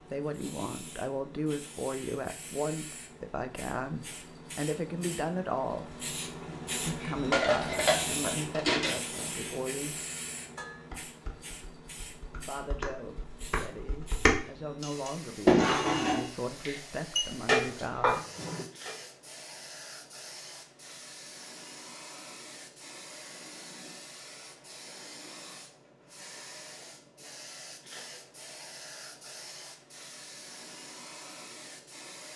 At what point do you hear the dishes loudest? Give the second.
16 s.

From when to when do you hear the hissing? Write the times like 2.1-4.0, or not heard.
0.0-32.3.